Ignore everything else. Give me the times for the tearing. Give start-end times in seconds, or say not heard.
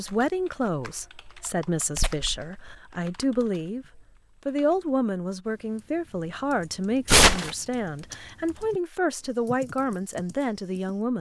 1.9-2.8, 7.0-7.5.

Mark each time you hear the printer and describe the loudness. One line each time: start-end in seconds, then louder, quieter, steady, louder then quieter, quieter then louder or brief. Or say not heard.
not heard.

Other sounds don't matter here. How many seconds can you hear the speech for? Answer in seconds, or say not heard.
11 s.